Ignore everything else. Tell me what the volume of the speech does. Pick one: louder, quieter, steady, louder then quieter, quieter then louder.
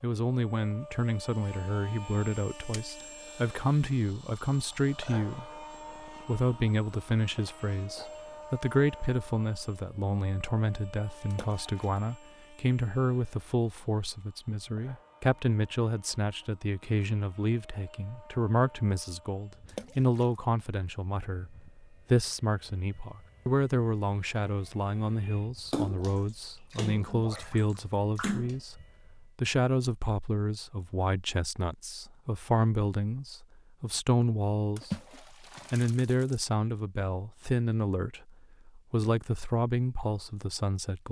steady.